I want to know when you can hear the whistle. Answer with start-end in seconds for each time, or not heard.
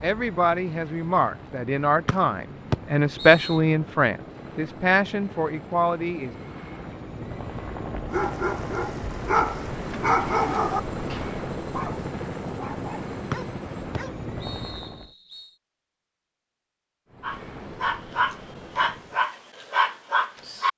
2.0-3.6, 13.3-15.5.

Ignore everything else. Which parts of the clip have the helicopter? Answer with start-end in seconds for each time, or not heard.
0.0-15.2, 17.1-19.2.